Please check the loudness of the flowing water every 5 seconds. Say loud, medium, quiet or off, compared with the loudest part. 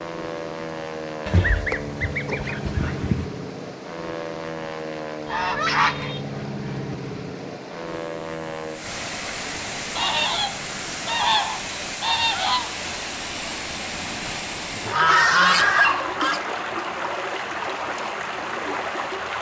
quiet, medium, loud, loud.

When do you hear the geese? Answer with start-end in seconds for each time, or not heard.
1.2-3.2, 5.2-6.2, 9.9-12.7, 14.9-16.4.